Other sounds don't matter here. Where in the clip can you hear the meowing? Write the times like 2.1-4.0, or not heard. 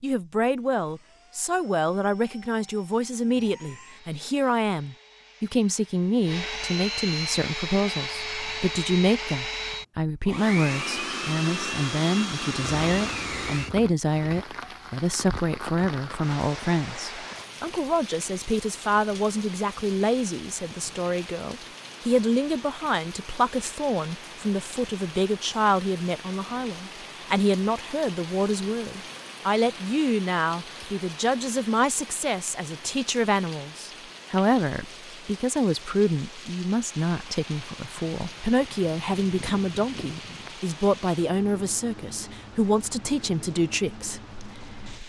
not heard.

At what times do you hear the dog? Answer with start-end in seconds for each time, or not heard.
not heard.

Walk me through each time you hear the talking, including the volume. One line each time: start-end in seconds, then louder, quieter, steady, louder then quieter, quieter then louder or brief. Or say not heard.
0.0-45.0 steady.